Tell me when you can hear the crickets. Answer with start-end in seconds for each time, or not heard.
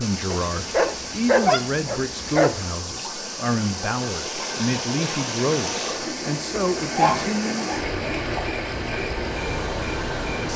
0.0-10.5.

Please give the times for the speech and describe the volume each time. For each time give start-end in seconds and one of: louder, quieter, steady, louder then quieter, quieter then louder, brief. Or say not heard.
0.0-7.6 steady.